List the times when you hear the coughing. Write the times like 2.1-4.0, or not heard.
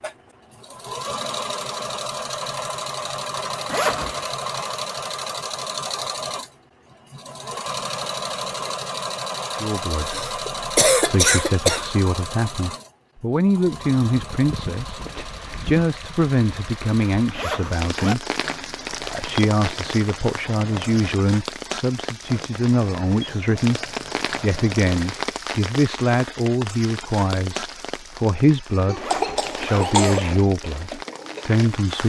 10.0-11.9, 28.9-30.2.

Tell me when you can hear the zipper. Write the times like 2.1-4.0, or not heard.
3.6-4.3, 17.4-18.1, 28.9-29.9.